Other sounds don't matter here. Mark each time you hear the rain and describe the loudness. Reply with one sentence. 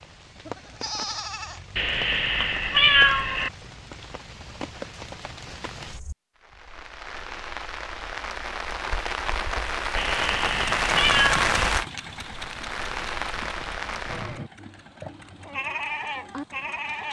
You can hear the rain from 0.0 to 14.4 s, getting louder.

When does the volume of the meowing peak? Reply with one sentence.
The volume of the meowing peaks at 3 seconds.